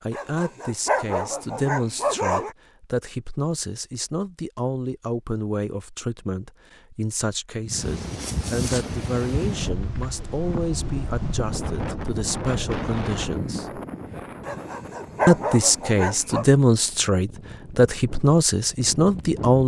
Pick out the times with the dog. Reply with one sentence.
The dog can be heard from 0.1 to 2.5 s and from 14.4 to 16.4 s.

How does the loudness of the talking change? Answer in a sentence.
The volume of the talking goes up.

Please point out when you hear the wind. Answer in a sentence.
You can hear the wind from 7.7 to 19.6 s.